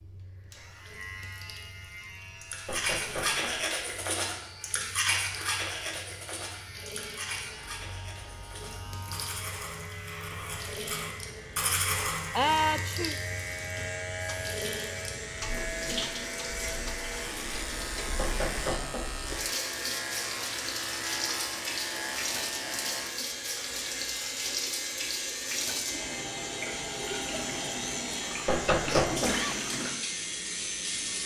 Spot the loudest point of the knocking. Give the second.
29 s.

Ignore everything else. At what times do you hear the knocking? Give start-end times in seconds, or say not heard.
2.6-3.5, 18.1-19.1, 28.4-29.4.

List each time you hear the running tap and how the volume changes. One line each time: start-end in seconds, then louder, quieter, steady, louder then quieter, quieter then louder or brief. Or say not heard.
0.0-31.2 louder.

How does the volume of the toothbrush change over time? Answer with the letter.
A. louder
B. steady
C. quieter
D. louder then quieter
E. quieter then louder
E.